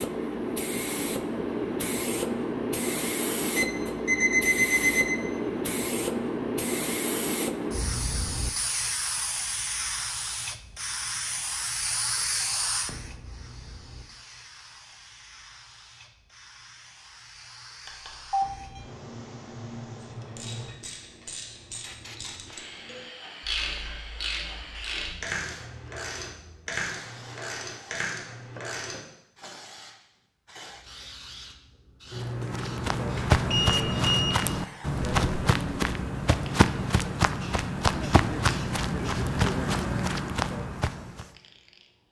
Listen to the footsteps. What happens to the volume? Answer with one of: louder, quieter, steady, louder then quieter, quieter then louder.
steady.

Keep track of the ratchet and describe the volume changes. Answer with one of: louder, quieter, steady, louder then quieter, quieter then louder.
louder.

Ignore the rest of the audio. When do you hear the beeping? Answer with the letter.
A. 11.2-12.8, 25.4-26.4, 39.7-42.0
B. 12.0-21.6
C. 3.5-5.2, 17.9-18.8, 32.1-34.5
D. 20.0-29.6
C.